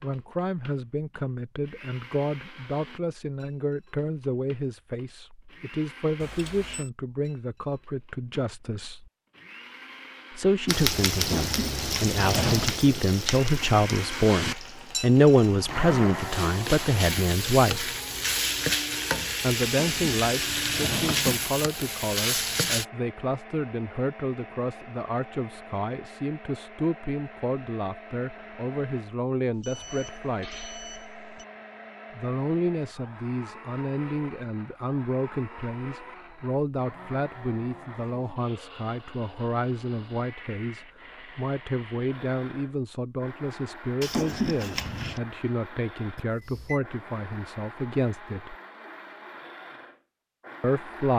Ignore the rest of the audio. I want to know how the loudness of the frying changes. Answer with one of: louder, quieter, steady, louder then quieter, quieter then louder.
quieter then louder.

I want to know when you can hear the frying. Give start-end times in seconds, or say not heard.
10.7-22.9.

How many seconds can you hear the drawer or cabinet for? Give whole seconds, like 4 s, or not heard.
4 s.